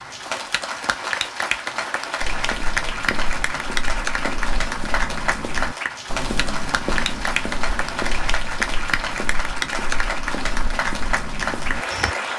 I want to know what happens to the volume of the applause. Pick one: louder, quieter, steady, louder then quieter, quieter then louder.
steady.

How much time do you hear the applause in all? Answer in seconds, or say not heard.
12 s.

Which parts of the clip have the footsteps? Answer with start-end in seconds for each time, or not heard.
2.2-12.2.